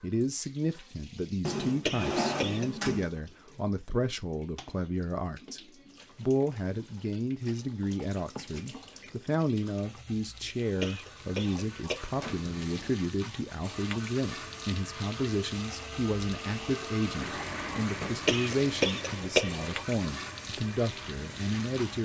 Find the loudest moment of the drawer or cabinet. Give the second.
2 s.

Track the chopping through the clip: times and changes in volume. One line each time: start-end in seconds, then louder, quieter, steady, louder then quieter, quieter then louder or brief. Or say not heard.
not heard.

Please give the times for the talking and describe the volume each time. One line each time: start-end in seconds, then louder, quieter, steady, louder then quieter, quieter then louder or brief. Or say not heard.
0.0-22.0 steady.